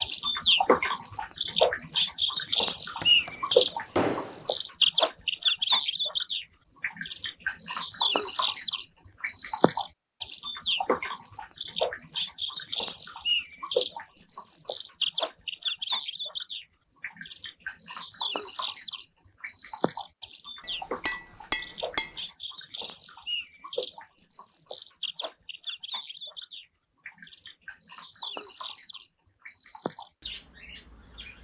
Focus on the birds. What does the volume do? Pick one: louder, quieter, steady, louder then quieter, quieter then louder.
quieter.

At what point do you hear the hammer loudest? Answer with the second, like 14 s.
4 s.